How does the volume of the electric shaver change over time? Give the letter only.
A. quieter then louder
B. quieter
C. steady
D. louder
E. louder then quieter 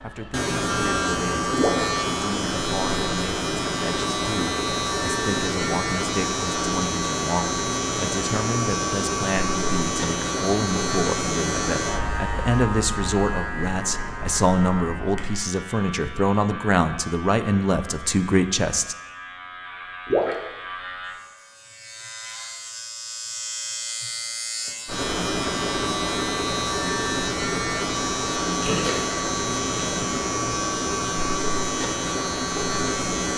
A.